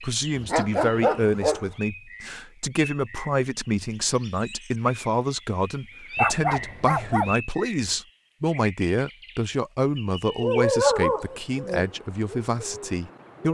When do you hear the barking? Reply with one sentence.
You can hear the barking from 0.3 to 1.7 s, from 6.2 to 7.3 s and from 10.4 to 11.8 s.